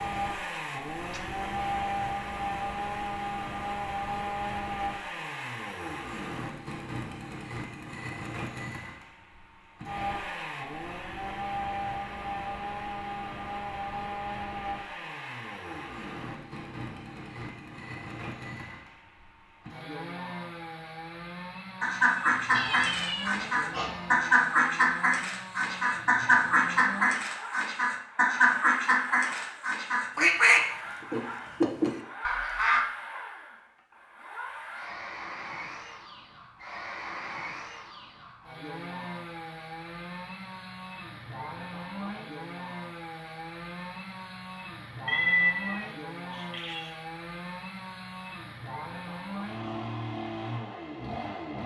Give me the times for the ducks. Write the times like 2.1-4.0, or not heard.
21.8-32.9.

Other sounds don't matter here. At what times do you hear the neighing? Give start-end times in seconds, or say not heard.
not heard.